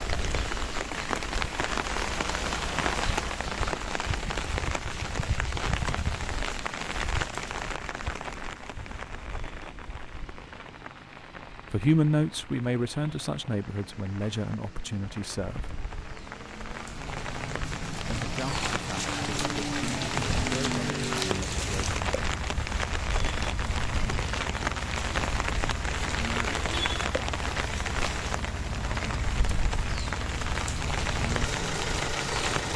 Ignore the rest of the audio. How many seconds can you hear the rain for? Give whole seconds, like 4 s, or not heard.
33 s.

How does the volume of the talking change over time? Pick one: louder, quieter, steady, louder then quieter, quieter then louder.
quieter.